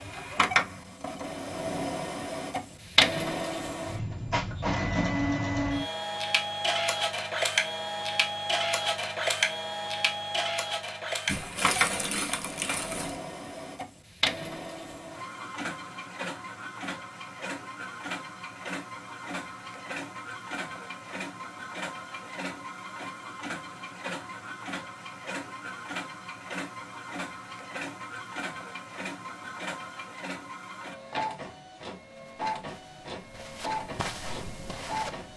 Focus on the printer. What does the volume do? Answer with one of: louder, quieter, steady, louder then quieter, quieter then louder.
quieter.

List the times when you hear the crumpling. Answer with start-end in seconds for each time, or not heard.
11.2-13.2.